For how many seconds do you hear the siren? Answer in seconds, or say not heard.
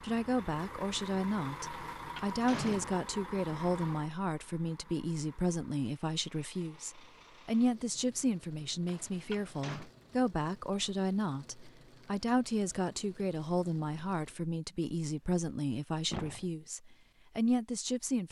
not heard.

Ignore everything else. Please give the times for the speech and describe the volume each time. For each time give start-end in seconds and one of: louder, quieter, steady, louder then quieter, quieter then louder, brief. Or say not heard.
0.0-18.2 steady.